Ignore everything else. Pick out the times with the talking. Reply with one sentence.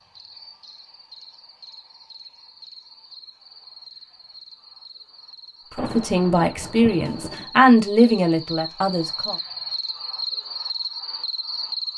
You can hear the talking from 5.8 to 9.3 s.